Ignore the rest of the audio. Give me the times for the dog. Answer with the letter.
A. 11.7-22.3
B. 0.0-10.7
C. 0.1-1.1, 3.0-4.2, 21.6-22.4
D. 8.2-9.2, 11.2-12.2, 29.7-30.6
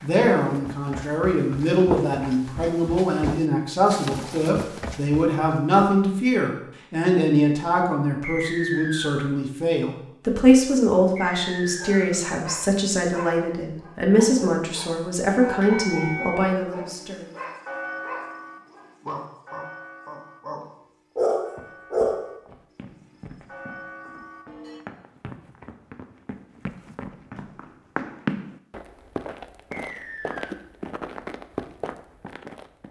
A.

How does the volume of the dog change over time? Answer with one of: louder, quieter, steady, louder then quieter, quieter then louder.
louder.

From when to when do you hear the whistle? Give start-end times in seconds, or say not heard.
8.2-9.2, 11.2-12.2, 29.7-30.6.